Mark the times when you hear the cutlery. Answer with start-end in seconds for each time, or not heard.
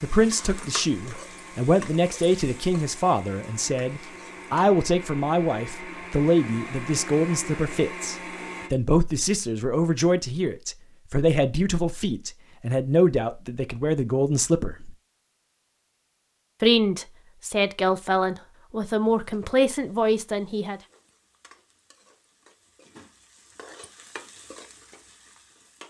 not heard.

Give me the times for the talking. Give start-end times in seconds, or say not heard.
0.0-14.9, 16.6-20.8.